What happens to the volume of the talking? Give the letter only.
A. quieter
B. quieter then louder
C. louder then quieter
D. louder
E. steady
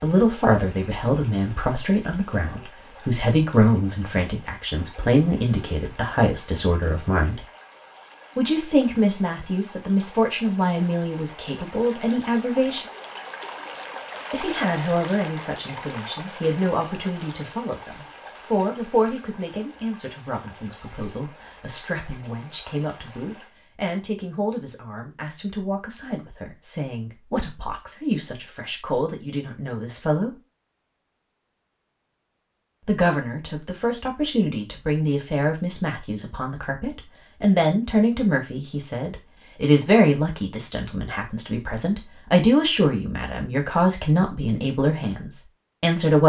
B.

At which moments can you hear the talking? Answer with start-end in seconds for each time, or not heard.
0.0-7.4, 8.3-12.8, 14.3-30.4, 32.9-46.2.